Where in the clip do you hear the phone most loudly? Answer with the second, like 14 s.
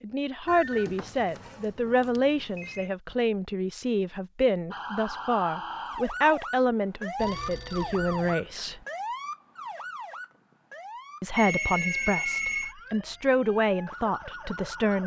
12 s.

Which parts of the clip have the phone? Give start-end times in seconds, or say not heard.
0.5-2.9, 7.2-8.3, 11.3-12.8.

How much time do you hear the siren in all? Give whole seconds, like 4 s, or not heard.
10 s.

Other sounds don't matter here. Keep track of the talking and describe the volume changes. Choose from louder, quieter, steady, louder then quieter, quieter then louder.
steady.